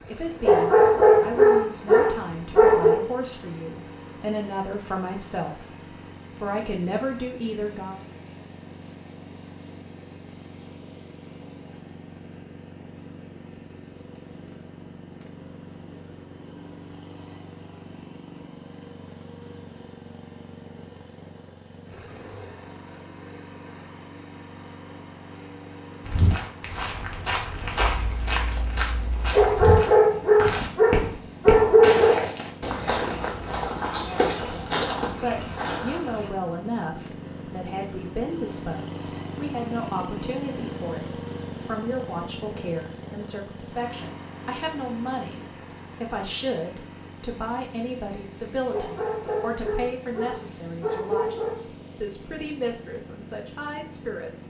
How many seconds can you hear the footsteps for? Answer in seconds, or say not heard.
10 s.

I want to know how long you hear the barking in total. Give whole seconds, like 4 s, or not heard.
8 s.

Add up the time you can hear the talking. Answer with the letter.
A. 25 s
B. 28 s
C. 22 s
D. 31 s
B.